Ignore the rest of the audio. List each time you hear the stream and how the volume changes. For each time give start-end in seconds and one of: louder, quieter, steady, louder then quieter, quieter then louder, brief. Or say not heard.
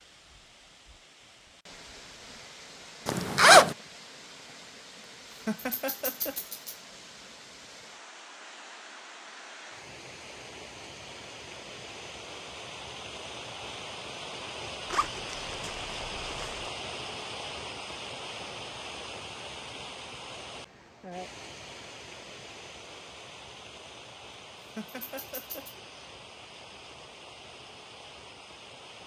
0.0-29.0 louder then quieter.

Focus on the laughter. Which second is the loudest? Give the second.
6 s.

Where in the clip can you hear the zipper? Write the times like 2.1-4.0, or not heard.
3.0-3.8, 14.9-16.7.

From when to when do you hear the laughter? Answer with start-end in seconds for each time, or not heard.
5.5-6.8, 24.8-25.8.